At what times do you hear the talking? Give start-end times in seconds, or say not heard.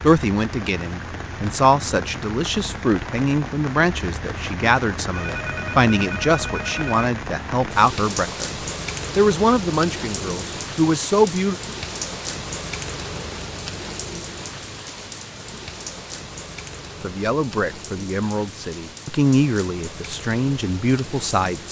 0.0-8.5, 9.2-11.6, 17.0-21.6.